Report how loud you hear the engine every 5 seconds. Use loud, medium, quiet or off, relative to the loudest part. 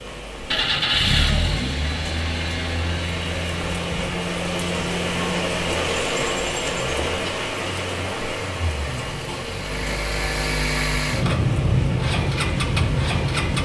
loud, medium, loud.